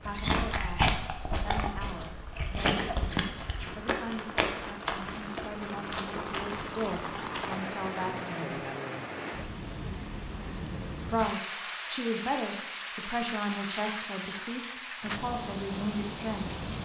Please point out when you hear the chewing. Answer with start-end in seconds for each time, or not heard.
0.1-7.6.